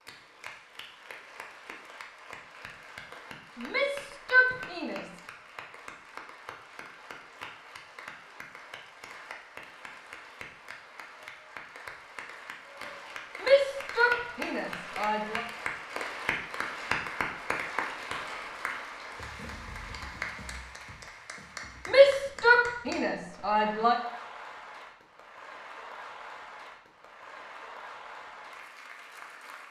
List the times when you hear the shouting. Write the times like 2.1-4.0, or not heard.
3.5-5.2, 13.4-15.4, 21.9-23.9.